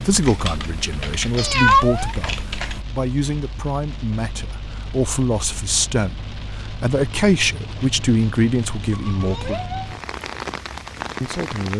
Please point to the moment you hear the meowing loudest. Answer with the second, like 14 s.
2 s.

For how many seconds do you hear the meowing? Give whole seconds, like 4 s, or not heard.
2 s.